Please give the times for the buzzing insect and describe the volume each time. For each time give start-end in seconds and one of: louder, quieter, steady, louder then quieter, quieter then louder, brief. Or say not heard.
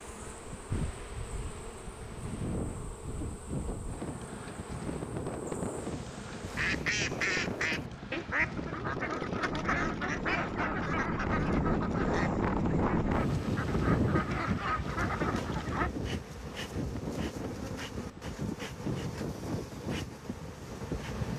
0.0-6.8 steady
14.8-21.3 steady.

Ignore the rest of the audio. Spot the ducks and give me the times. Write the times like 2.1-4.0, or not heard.
6.5-15.9.